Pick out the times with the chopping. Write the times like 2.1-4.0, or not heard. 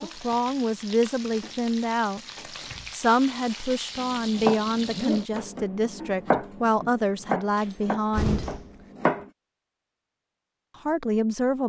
4.0-9.3.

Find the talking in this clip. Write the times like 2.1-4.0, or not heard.
0.0-2.2, 2.9-8.4, 10.8-11.6.